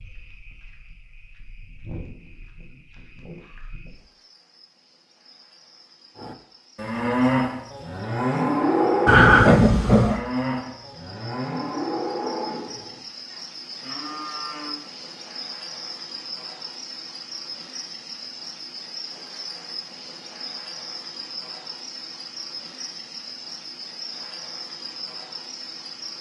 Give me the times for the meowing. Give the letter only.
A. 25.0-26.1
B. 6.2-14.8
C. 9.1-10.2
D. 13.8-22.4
C.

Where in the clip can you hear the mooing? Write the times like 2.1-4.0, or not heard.
6.2-14.8.